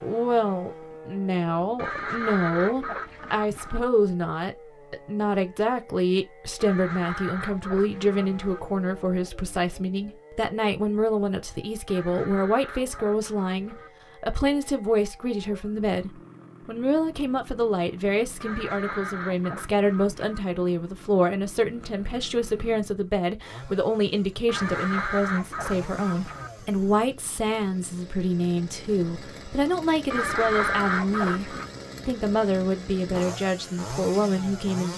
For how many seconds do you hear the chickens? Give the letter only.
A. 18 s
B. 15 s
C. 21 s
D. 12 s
D.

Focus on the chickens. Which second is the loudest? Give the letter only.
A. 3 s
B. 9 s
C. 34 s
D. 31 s
D.